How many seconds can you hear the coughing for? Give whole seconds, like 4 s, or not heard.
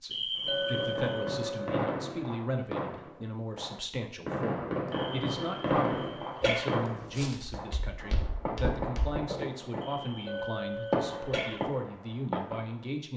5 s.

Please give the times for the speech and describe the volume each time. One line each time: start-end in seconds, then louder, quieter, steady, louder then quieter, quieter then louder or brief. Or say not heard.
0.0-13.1 steady.